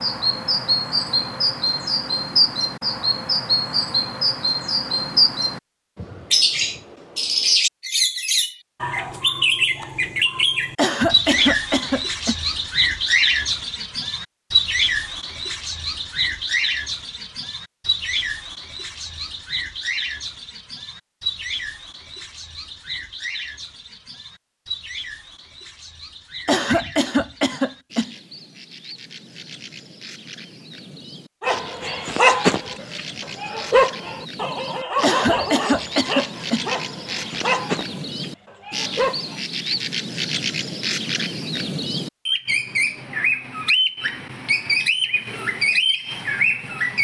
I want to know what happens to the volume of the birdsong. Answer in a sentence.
The volume of the birdsong goes down, then up.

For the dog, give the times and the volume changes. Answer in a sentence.
You can hear the dog from 31.4 to 39.4 s, getting quieter.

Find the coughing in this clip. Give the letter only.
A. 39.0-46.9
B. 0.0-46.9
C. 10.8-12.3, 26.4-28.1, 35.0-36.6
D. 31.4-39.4
C.